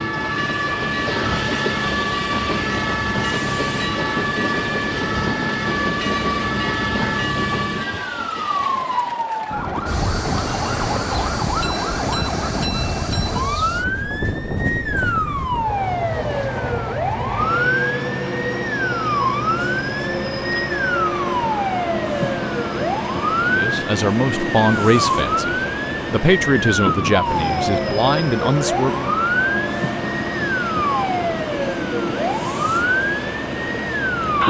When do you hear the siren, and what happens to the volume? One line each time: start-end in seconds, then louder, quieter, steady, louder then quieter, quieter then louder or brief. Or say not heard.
0.0-34.4 steady.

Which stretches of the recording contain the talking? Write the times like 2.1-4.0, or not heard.
23.4-29.1.